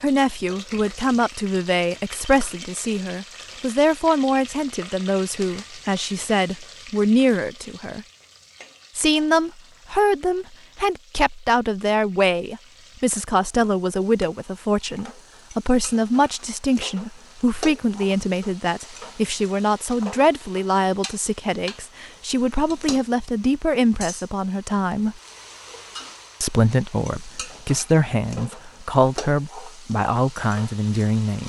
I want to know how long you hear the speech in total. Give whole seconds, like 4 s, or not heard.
29 s.